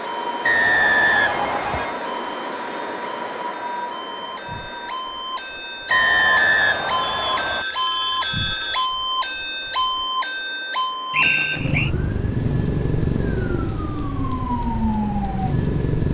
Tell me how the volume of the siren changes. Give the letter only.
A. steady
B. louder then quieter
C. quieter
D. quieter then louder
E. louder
E.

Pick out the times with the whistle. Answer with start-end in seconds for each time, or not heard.
0.4-2.0, 5.9-7.7, 11.1-11.9.